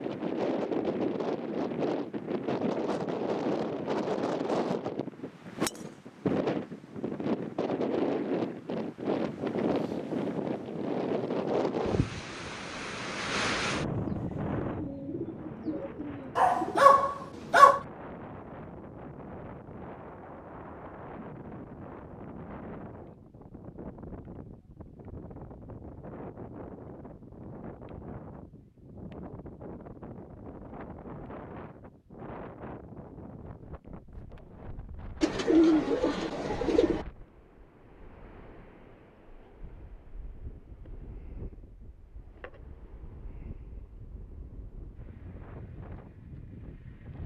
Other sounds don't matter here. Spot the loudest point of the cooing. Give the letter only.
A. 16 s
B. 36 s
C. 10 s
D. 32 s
B.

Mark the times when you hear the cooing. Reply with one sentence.
You can hear the cooing from 14.1 to 16.9 s and from 35.2 to 37.0 s.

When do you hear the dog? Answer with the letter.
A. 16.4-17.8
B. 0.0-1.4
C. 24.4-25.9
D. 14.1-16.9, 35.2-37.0
A.